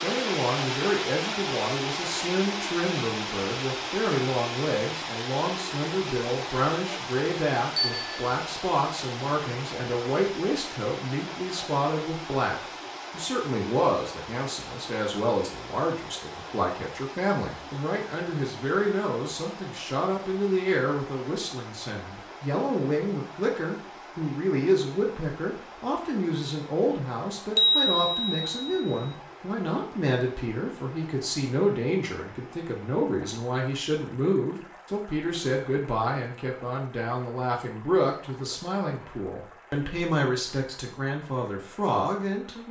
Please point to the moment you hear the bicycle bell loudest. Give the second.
28 s.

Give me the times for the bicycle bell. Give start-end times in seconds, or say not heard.
7.8-8.3, 27.6-28.9.